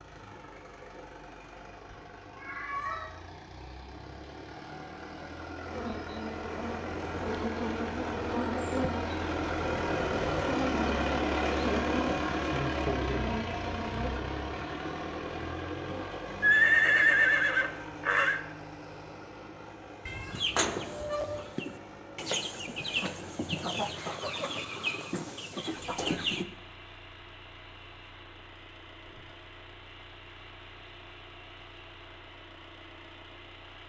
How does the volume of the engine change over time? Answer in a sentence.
The volume of the engine goes up, then down.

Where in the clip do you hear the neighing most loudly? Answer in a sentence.
The volume of the neighing peaks at 17 seconds.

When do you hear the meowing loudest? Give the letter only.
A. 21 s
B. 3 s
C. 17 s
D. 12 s
B.